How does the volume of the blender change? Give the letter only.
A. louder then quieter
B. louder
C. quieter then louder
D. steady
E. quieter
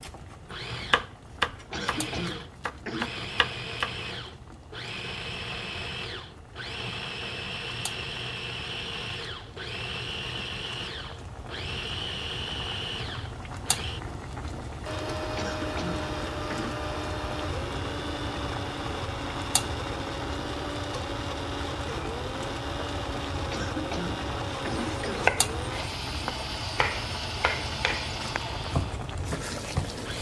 D.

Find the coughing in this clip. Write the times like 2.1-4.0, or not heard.
1.7-3.1, 15.3-16.8, 23.5-25.3.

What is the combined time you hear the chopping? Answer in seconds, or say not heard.
9 s.